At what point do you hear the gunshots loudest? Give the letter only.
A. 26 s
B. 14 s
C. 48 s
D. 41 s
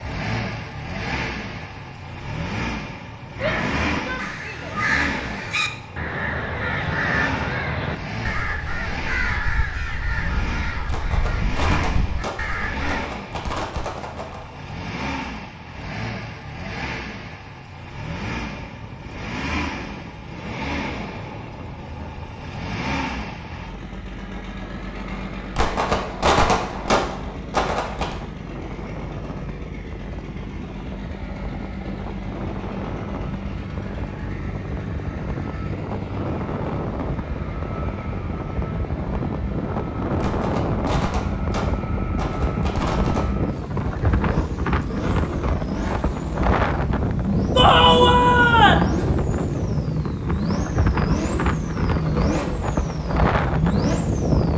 A.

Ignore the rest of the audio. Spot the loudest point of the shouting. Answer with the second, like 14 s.
48 s.